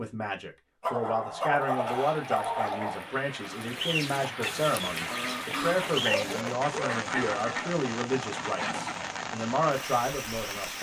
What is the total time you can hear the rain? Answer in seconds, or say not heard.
9 s.